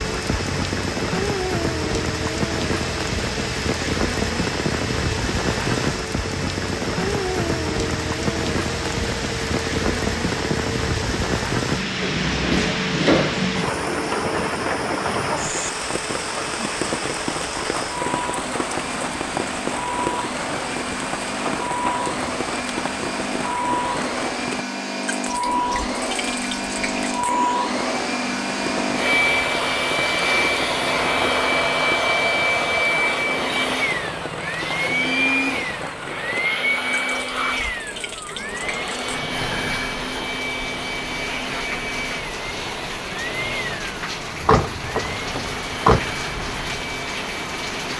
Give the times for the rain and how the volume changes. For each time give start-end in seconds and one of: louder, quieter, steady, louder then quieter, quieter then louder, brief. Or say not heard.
0.0-47.9 quieter.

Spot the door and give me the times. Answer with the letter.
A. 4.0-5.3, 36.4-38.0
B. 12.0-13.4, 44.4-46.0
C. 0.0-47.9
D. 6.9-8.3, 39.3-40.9
B.